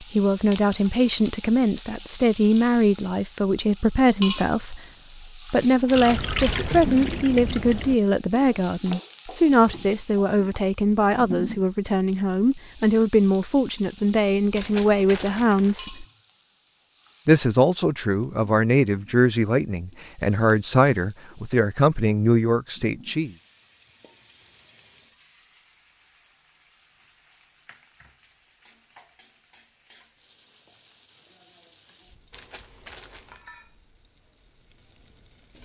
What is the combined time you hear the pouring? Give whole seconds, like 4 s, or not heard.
2 s.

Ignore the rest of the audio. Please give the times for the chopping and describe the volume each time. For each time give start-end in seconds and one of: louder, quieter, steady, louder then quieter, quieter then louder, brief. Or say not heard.
not heard.